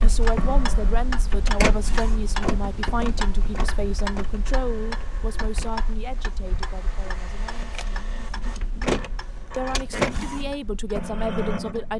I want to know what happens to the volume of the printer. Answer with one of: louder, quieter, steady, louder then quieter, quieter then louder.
quieter then louder.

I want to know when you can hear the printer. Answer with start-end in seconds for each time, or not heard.
0.0-11.9.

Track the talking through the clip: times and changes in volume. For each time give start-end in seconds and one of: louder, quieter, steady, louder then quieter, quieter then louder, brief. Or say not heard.
0.0-8.2 quieter
9.6-11.9 brief.